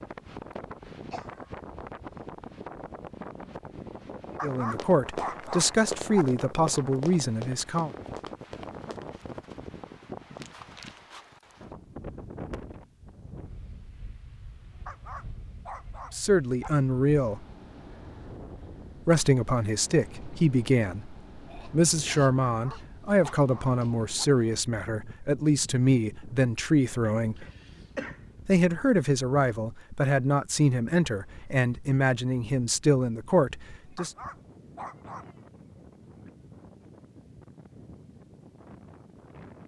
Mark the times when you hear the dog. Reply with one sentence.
You can hear the dog from 4.3 to 6.2 s, from 14.8 to 16.7 s, from 22.4 to 24.2 s and from 33.9 to 35.4 s.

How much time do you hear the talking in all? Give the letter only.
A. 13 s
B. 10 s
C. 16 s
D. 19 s
D.